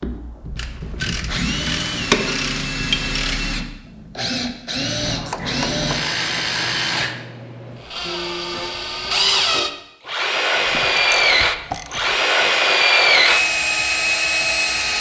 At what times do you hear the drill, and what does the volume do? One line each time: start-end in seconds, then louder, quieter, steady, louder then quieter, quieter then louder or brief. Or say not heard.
0.0-14.9 louder.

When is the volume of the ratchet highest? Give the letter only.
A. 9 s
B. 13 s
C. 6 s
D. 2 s
D.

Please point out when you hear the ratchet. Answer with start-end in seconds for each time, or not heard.
0.6-3.4, 5.0-7.0, 10.7-12.2.